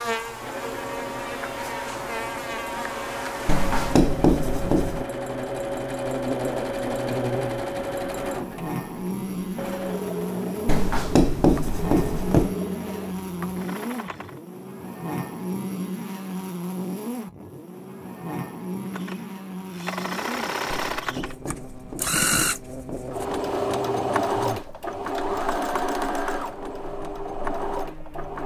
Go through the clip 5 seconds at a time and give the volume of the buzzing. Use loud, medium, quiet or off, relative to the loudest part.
loud, loud, loud, loud, medium, quiet.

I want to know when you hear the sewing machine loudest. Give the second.
24 s.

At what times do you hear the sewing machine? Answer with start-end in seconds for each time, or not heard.
0.2-14.4, 18.9-28.4.